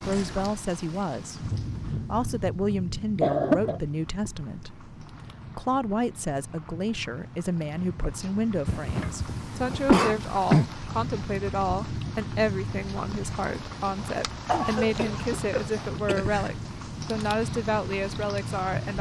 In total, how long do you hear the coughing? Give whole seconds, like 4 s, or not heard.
5 s.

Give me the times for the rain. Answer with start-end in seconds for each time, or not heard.
0.0-18.9.